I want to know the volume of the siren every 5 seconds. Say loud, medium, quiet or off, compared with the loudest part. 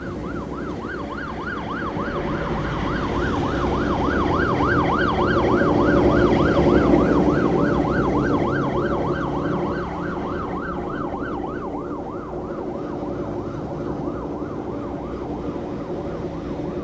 loud, loud, medium, medium.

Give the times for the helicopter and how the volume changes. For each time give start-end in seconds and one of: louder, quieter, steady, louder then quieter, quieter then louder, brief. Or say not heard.
0.0-16.7 louder then quieter.